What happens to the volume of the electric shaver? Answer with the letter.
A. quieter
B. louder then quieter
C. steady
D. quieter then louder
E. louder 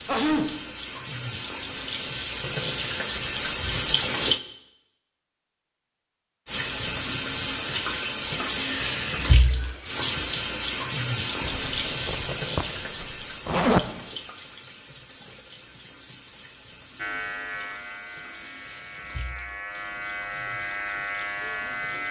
D.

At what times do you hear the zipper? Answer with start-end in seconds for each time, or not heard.
11.4-13.9.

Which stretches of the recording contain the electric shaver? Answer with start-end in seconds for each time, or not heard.
16.9-22.0.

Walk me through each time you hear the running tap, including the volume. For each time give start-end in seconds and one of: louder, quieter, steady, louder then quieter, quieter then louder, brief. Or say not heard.
0.0-4.4 louder
6.5-22.0 quieter.